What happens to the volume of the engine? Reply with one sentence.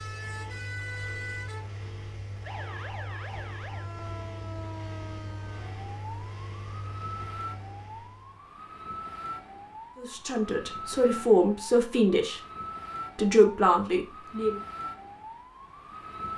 The volume of the engine stays about the same.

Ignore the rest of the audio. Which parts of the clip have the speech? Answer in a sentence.
The speech can be heard from 9.9 to 12.4 s and from 13.2 to 14.6 s.